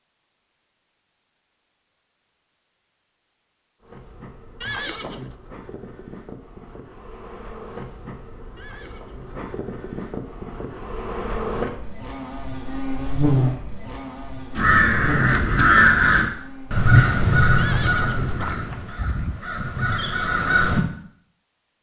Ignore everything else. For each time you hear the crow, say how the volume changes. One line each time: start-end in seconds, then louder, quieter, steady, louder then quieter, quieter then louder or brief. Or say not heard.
14.6-20.9 quieter then louder.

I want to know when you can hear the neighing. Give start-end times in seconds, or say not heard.
4.6-5.3, 8.6-9.5, 17.6-19.4.